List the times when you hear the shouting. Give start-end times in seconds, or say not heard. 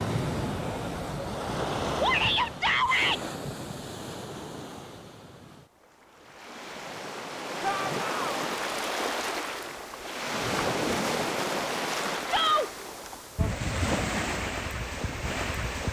2.0-3.2, 7.6-8.5, 12.2-12.7.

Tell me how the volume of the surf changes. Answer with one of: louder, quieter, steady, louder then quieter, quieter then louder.
quieter then louder.